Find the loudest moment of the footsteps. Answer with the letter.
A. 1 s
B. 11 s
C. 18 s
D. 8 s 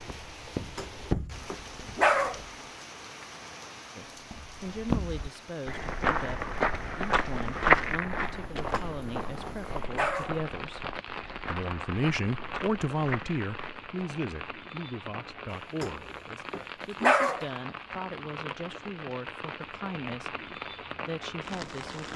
D.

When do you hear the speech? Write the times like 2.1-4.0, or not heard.
4.0-22.1.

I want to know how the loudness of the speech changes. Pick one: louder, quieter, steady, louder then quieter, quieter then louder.
louder then quieter.